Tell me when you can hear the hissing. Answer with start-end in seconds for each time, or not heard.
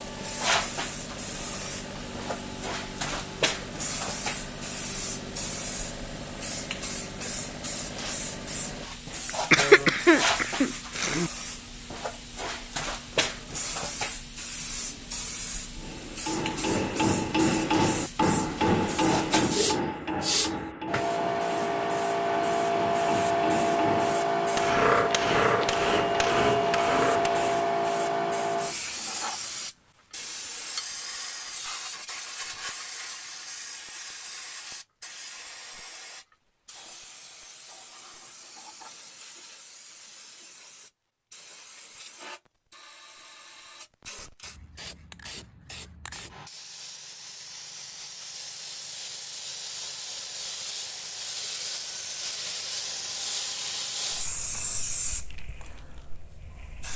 0.0-56.9.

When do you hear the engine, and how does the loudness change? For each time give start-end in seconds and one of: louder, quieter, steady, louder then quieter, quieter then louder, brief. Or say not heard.
0.0-8.9 steady.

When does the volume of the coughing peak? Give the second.
10 s.